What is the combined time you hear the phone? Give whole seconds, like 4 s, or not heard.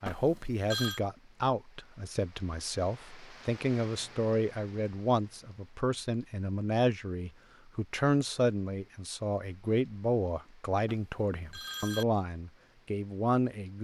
2 s.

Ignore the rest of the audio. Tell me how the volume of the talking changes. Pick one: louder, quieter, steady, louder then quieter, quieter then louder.
steady.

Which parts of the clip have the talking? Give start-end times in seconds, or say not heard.
0.0-13.8.